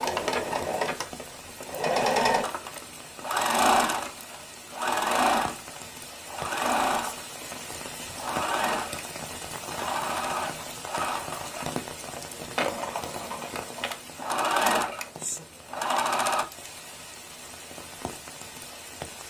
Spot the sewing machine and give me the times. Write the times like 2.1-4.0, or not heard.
0.0-16.4.